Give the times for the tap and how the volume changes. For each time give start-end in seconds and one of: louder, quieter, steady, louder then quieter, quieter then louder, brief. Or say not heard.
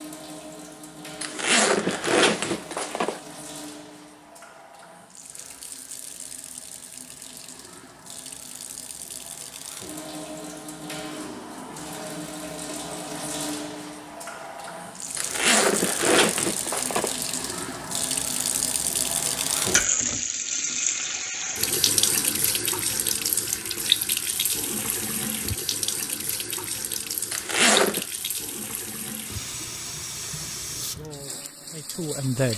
0.0-32.5 louder then quieter.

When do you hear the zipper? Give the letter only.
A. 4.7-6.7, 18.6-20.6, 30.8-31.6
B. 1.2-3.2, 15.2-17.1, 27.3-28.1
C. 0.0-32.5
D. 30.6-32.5
B.